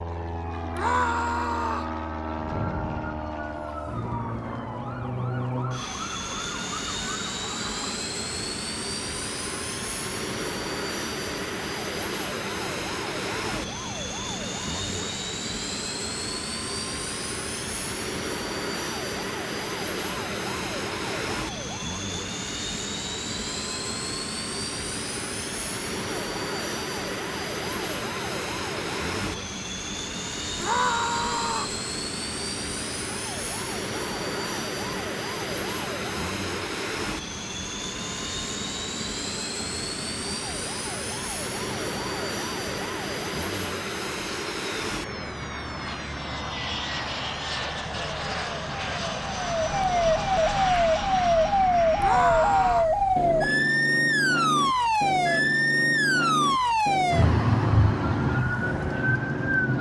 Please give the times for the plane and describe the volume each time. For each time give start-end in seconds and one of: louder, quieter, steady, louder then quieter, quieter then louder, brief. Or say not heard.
0.0-59.7 steady.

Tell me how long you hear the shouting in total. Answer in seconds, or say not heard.
3 s.